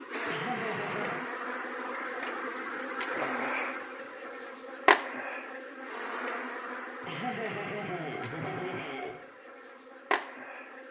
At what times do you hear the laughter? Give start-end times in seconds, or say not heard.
0.2-1.2, 7.0-9.2.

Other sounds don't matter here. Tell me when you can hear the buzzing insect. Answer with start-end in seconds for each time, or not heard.
0.0-10.8.